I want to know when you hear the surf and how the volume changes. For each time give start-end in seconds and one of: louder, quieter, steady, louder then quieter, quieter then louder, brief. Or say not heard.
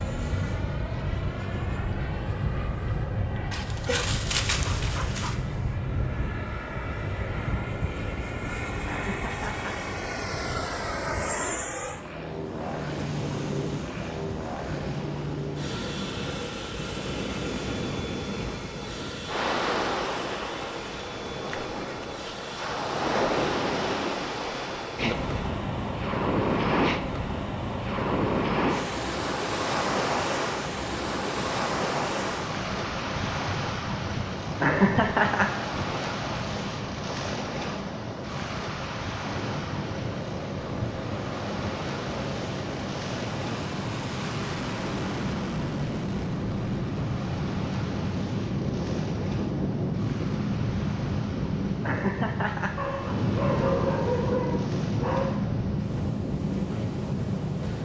0.1-57.7 louder then quieter.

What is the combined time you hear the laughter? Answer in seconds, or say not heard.
3 s.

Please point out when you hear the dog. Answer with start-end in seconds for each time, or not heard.
3.5-5.3, 52.8-55.6.